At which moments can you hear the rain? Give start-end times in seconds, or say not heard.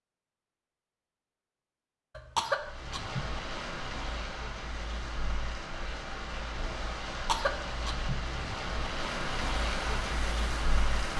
2.5-11.1.